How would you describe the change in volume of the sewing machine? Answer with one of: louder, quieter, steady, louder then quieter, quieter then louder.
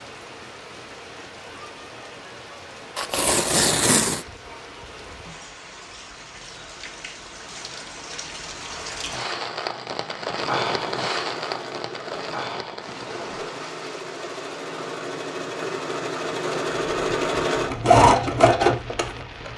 louder.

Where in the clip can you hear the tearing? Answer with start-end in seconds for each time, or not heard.
3.0-4.2.